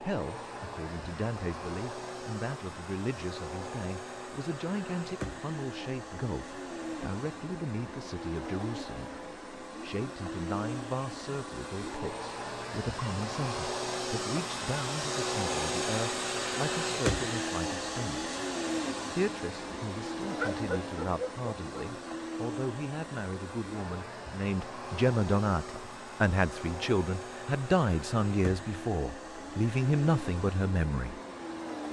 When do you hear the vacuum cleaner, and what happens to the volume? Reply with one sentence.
The vacuum cleaner can be heard from 0.0 to 31.8 s, getting louder then quieter.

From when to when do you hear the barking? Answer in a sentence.
You can hear the barking from 20.4 to 21.9 s.